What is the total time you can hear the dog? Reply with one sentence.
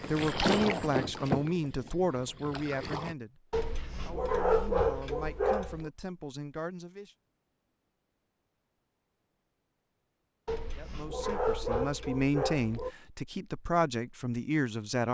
You can hear the dog for 5 seconds altogether.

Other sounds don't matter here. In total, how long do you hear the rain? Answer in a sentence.
The rain can't be heard in this clip.